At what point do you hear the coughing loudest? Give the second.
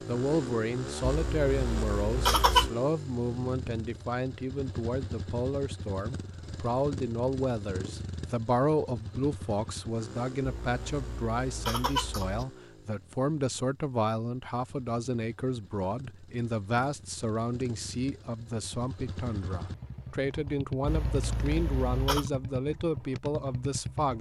2 s.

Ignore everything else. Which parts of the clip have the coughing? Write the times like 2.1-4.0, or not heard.
1.1-2.7, 10.4-12.4, 20.9-22.3.